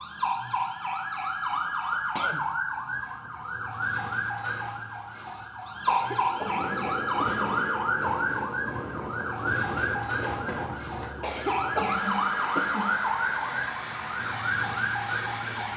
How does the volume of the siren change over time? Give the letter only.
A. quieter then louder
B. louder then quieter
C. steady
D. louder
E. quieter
C.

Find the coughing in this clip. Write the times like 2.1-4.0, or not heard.
1.2-2.5, 5.8-7.5, 11.2-13.0.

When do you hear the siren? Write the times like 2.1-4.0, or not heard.
0.0-15.7.